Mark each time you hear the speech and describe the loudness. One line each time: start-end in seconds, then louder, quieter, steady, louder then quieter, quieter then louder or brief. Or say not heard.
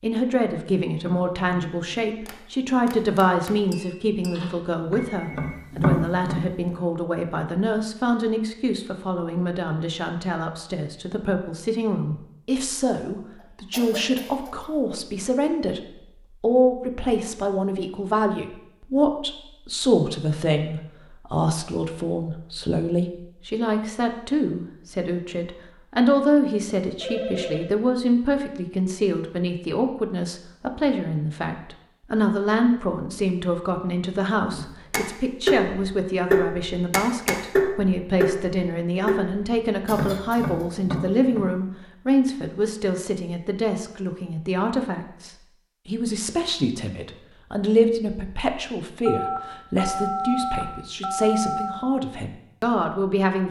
0.0-53.4 steady.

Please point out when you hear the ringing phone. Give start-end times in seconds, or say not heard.
4.3-5.5, 27.0-27.7, 49.0-51.8.